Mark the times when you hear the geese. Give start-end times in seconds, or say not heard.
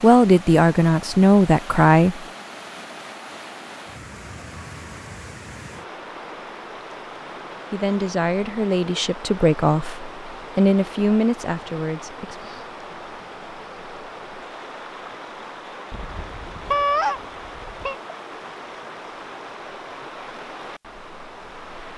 15.9-17.9.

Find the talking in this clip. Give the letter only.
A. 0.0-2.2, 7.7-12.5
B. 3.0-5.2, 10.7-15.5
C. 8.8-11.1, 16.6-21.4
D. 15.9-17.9
A.